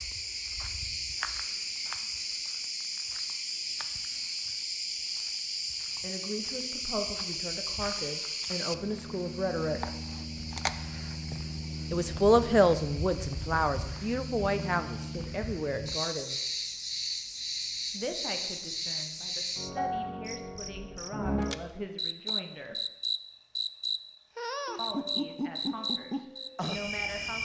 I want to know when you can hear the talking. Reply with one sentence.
You can hear the talking from 6.0 to 9.9 s, from 11.9 to 16.4 s, from 17.9 to 22.8 s and from 24.8 to 27.4 s.